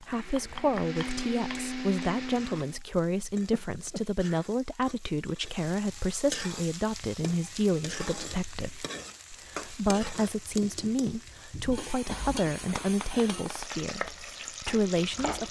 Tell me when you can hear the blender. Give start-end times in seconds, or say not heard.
0.0-2.8.